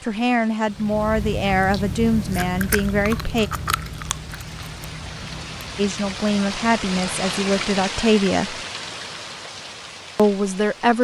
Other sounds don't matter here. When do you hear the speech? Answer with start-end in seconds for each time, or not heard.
0.0-3.5, 5.8-8.6, 10.2-11.0.